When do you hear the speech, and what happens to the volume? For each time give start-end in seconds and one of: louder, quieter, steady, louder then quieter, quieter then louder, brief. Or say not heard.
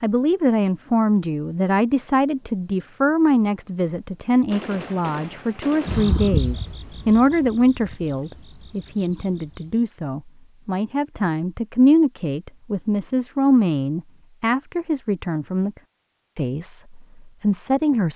0.0-15.8 steady
16.4-18.1 brief.